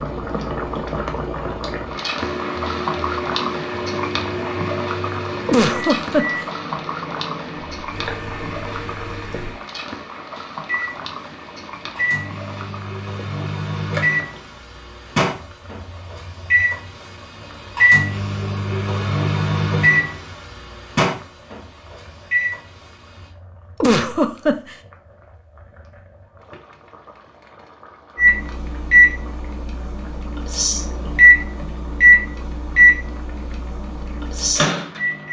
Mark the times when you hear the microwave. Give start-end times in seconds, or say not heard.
2.1-23.2, 28.1-35.2.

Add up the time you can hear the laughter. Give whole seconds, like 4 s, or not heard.
2 s.